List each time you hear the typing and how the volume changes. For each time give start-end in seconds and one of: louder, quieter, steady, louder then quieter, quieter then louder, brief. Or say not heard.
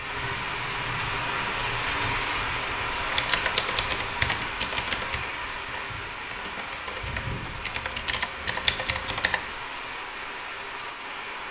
3.0-9.5 quieter then louder.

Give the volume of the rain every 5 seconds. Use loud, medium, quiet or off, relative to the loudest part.
loud, medium, medium.